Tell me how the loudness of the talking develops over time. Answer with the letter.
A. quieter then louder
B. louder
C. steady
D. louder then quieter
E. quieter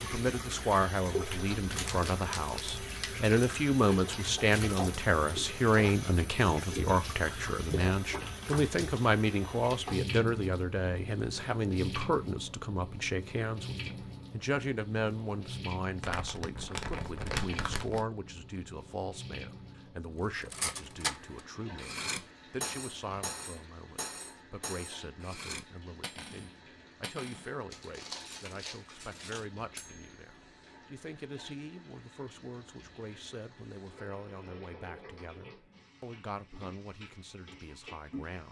E.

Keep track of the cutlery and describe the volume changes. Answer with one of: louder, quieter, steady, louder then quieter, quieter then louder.
quieter.